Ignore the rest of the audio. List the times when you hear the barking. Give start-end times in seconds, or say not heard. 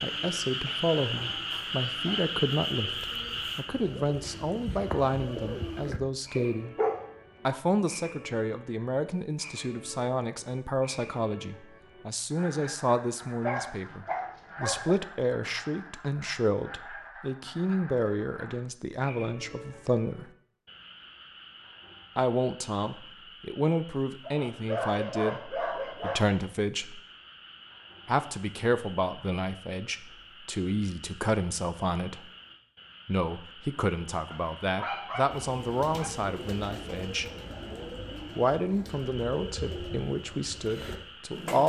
6.6-7.6, 13.4-14.9, 24.2-26.4, 34.3-36.1.